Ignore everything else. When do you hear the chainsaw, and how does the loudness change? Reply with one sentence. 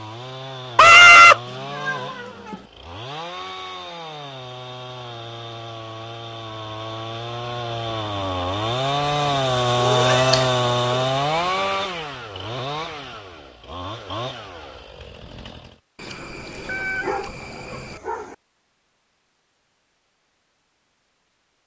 The chainsaw can be heard from 0.0 to 15.8 s, getting louder then quieter.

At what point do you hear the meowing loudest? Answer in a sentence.
The loudest moment of the meowing is at 1 second.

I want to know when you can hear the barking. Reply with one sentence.
The barking can be heard from 16.6 to 18.4 s.